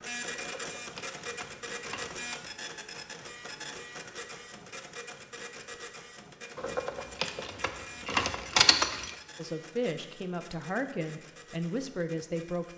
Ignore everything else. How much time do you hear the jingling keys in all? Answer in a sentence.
You can hear the jingling keys for 5 seconds altogether.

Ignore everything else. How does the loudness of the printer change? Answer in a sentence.
The volume of the printer goes down.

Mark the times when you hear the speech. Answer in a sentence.
You can hear the speech from 9.3 to 12.7 s.